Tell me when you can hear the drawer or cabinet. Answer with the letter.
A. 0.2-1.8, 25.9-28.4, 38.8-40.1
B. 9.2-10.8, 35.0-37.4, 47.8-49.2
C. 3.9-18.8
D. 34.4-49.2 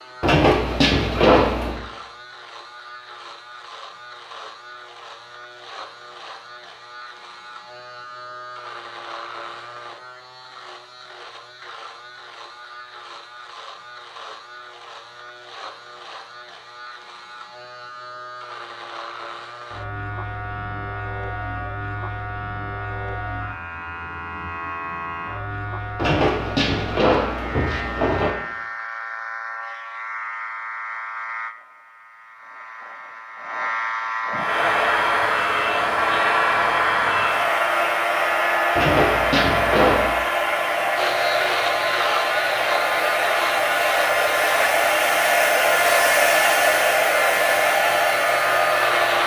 A.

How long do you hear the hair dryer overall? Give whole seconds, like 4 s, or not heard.
15 s.